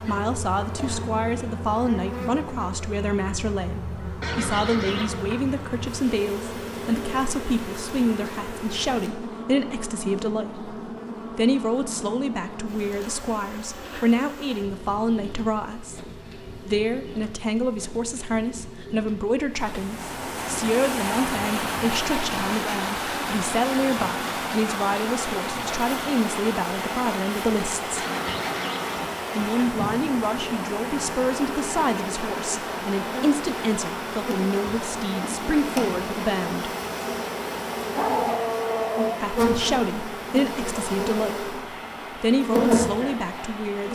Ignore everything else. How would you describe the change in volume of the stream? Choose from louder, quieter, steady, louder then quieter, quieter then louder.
quieter.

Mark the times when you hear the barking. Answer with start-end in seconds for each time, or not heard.
37.8-39.3.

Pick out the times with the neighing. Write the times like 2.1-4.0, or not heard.
4.2-5.2, 27.9-29.1.